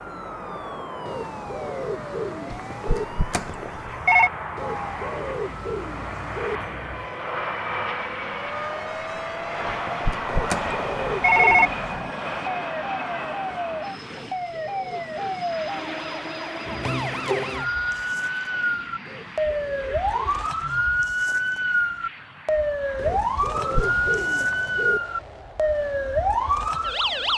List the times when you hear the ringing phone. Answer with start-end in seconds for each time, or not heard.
2.5-4.3, 9.7-11.7, 23.4-23.9.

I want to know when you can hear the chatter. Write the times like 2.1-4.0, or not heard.
not heard.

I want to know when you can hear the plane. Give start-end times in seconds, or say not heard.
0.0-27.3.